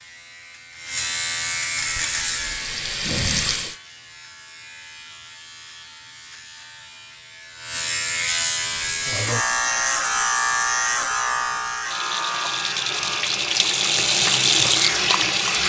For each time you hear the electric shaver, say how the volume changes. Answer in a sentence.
The electric shaver can be heard from 0.0 to 13.2 s, getting quieter then louder.